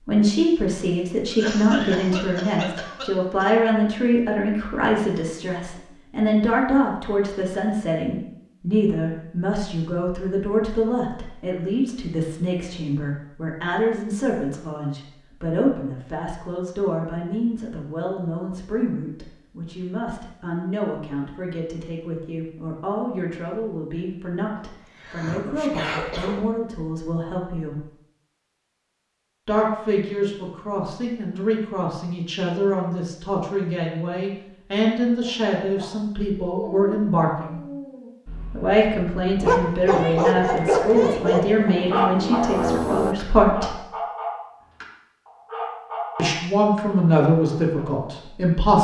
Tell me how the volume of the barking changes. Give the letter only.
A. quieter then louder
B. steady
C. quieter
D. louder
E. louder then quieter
E.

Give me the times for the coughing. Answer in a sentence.
The coughing can be heard from 1.2 to 3.5 s and from 24.6 to 26.4 s.